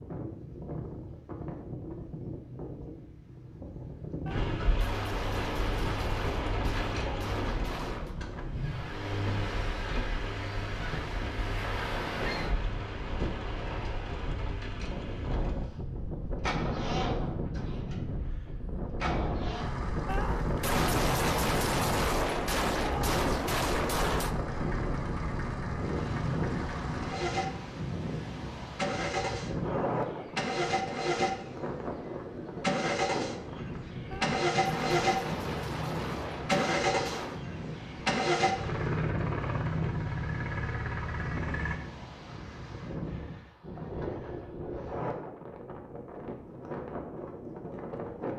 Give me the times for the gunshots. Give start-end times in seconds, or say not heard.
4.2-8.2, 20.1-24.4, 34.1-37.5.